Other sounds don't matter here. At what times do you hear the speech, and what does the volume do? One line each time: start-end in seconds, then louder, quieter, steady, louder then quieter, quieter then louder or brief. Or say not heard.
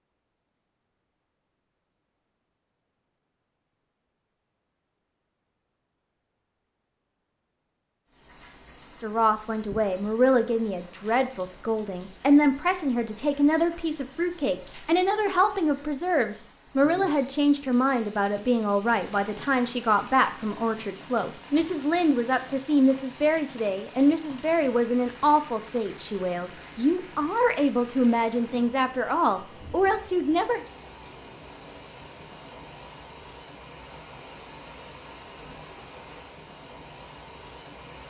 9.0-30.6 steady.